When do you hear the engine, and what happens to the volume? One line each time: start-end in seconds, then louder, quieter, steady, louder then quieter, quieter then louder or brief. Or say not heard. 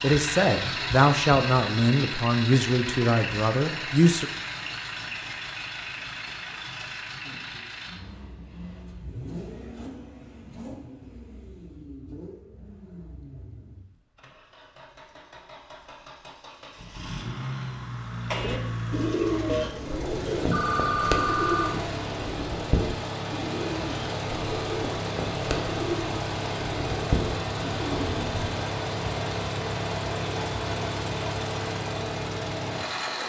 0.0-33.2 quieter then louder.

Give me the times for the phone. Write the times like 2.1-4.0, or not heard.
19.4-21.8.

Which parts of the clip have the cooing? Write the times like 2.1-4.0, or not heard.
18.3-28.4.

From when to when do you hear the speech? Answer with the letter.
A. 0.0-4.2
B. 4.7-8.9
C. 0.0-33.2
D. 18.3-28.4
A.